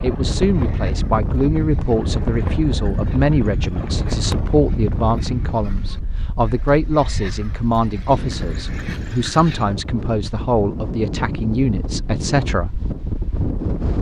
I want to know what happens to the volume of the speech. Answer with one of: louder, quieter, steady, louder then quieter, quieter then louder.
steady.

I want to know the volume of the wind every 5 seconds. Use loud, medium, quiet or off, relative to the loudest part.
loud, medium, loud.